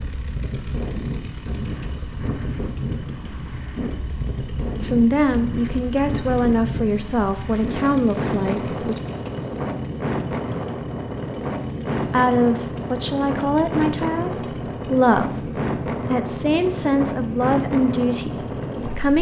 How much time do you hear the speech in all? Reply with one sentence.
The speech can be heard for 11 seconds in total.